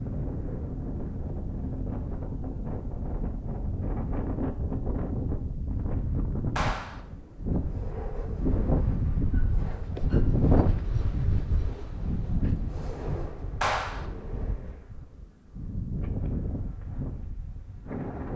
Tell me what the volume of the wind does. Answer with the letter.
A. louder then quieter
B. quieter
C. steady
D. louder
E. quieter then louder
A.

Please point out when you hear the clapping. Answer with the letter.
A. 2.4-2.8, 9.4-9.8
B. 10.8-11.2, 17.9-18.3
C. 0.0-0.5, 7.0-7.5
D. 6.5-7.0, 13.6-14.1
D.